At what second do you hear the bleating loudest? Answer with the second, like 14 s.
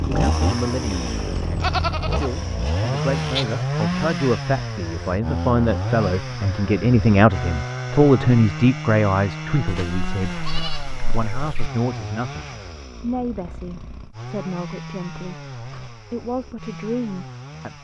2 s.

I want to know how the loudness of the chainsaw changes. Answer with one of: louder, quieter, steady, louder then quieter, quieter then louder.
quieter.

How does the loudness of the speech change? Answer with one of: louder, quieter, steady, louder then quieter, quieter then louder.
louder then quieter.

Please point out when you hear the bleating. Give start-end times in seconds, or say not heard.
1.6-3.6, 9.7-11.7.